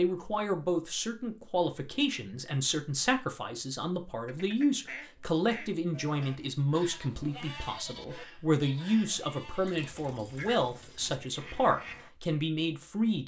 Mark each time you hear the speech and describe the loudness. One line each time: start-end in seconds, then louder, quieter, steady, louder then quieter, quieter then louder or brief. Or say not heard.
0.0-13.2 steady.